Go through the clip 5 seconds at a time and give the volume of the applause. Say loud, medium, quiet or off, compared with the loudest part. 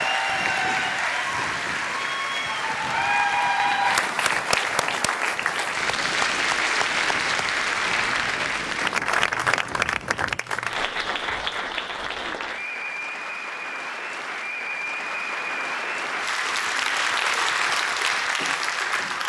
loud, loud, medium, loud.